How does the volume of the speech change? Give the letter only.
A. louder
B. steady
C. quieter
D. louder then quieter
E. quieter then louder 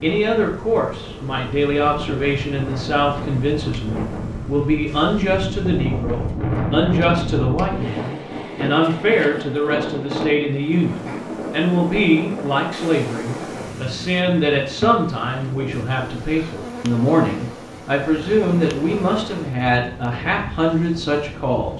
B.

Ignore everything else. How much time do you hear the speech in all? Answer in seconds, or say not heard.
22 s.